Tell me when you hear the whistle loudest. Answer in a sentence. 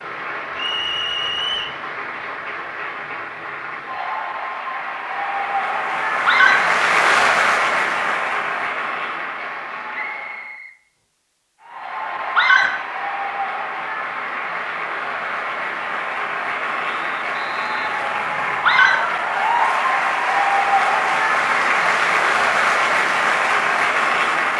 The volume of the whistle peaks at 1 second.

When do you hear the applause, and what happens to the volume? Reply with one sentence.
You can hear the applause from 0.0 to 10.6 s, getting louder then quieter; and from 11.6 to 24.5 s, getting louder.